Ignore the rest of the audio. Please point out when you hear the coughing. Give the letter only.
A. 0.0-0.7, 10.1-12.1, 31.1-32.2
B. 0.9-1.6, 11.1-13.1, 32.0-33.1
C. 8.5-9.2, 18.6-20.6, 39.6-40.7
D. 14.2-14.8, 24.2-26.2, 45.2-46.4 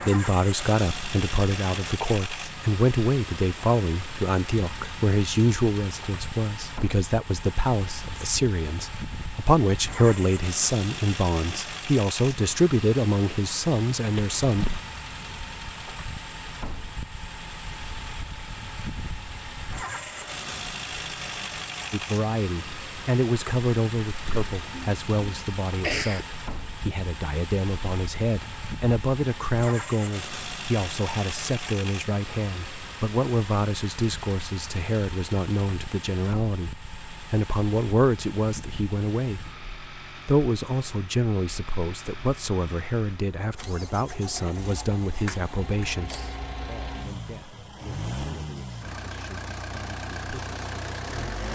D.